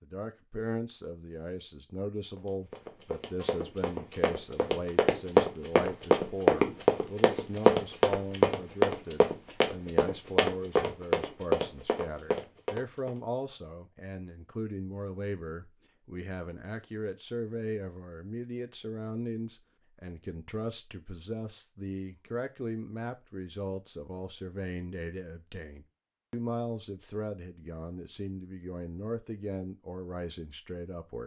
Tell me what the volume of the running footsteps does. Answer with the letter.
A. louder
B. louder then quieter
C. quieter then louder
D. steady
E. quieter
B.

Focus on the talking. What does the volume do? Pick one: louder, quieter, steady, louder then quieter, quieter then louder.
steady.